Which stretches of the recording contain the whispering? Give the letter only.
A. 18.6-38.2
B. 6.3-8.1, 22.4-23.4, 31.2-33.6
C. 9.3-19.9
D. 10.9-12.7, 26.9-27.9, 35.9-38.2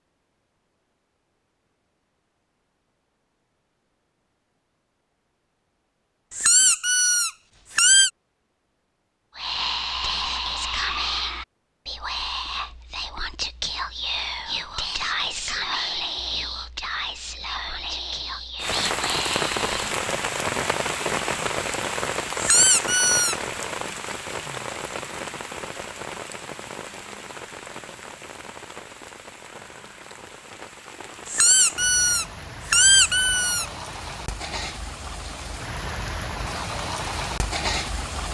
C.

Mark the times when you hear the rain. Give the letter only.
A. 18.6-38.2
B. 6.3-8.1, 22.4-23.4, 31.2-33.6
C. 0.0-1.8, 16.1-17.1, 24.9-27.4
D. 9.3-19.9
A.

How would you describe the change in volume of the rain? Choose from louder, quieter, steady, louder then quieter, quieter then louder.
quieter then louder.